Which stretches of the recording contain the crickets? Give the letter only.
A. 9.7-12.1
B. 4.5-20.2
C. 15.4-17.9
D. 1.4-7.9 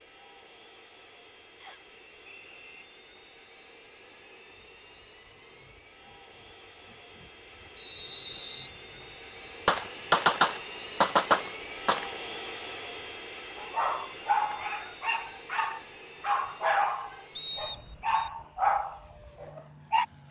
B.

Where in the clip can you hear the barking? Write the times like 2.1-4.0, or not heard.
13.6-20.1.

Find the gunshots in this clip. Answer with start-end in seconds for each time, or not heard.
9.7-12.1.